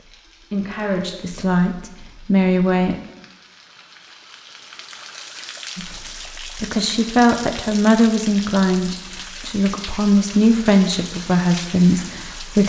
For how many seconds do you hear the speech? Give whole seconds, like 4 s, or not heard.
10 s.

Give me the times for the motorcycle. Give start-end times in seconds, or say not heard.
not heard.